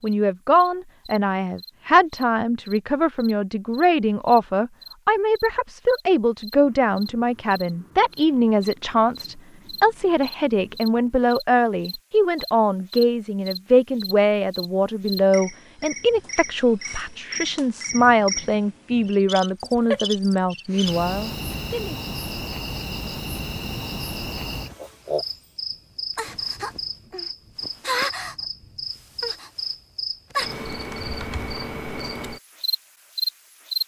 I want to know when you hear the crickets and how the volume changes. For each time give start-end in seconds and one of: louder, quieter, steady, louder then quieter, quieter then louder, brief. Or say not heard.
0.0-33.8 louder.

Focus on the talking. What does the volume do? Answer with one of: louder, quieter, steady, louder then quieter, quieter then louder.
steady.